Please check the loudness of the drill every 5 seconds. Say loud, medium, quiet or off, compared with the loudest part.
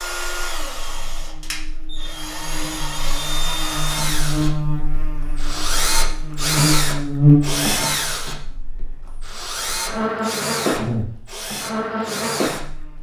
medium, loud, medium.